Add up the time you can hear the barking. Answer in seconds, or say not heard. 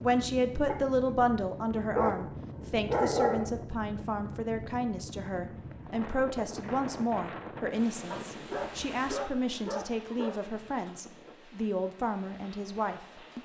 5 s.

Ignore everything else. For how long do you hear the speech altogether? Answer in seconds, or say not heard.
13 s.